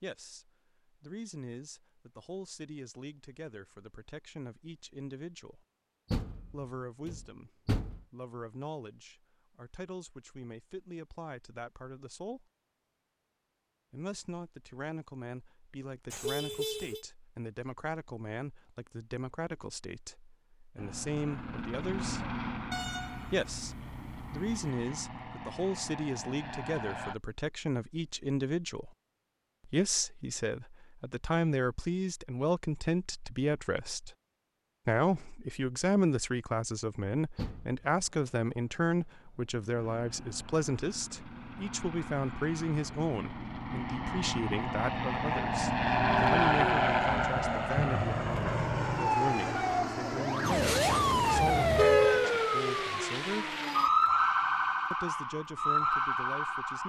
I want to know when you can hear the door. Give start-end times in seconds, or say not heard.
6.1-8.1, 37.4-37.9.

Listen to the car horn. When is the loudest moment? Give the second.
52 s.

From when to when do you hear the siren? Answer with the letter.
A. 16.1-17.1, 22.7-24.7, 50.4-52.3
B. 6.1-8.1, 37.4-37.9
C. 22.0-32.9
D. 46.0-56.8
D.